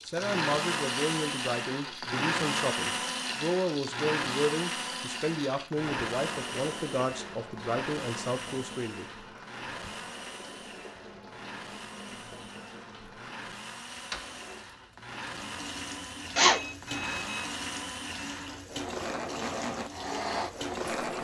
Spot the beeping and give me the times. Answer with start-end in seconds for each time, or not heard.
16.4-17.4.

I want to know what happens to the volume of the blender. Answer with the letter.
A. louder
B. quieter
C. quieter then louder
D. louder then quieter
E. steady
C.